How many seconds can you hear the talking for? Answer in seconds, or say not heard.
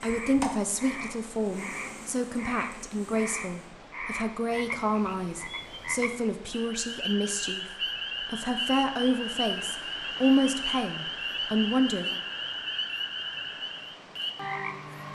12 s.